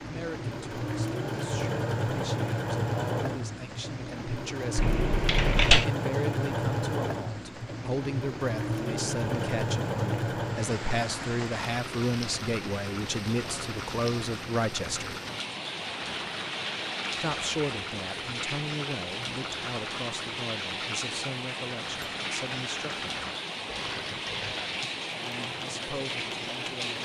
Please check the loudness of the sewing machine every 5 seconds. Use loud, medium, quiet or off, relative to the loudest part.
loud, loud, medium, medium, medium, medium.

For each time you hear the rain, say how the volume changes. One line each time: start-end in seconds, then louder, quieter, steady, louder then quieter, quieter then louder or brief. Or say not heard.
0.0-27.0 louder.